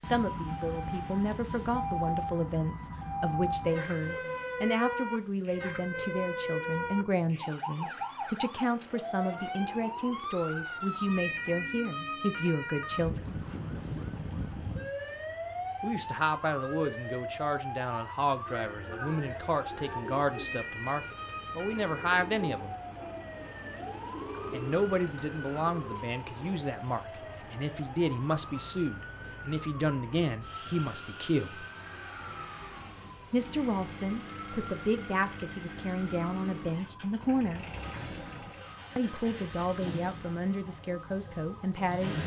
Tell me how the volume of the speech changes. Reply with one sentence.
The volume of the speech stays about the same.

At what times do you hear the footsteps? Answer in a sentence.
The footsteps can't be heard in this clip.